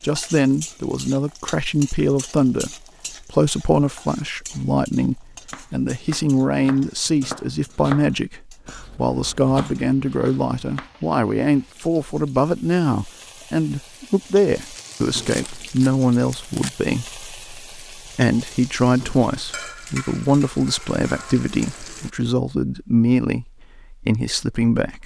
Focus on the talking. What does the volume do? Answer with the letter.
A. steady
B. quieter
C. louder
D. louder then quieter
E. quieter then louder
A.